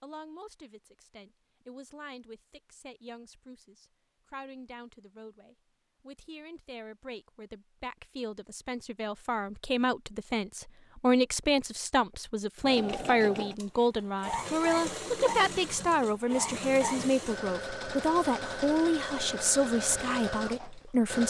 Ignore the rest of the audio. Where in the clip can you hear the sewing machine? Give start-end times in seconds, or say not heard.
12.6-21.2.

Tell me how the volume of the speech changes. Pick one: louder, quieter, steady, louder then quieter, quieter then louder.
louder.